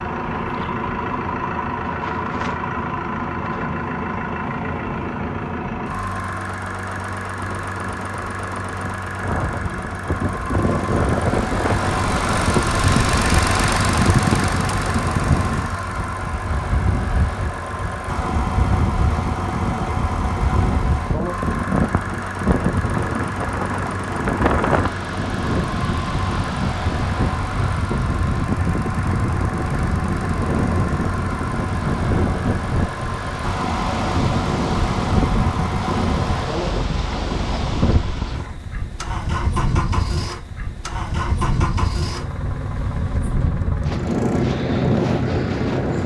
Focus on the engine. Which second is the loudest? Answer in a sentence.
The loudest moment of the engine is at 13 seconds.